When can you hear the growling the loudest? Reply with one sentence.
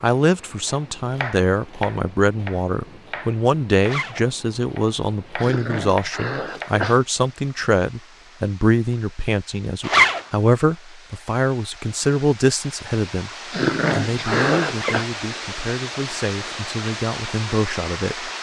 The volume of the growling peaks at 14 seconds.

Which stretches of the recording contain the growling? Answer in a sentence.
The growling can be heard from 5.4 to 7.0 s and from 13.5 to 15.1 s.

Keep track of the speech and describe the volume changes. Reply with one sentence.
The loudness of the speech goes down.